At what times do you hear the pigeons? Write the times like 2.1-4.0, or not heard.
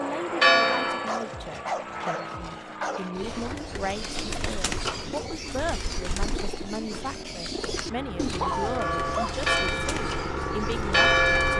3.1-11.5.